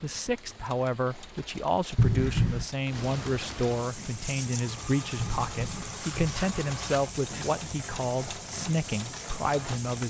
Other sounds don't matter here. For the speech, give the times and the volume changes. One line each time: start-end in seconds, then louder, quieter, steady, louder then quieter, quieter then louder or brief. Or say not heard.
0.0-10.0 steady.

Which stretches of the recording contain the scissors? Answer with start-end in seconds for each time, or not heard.
1.9-2.6, 5.2-7.2.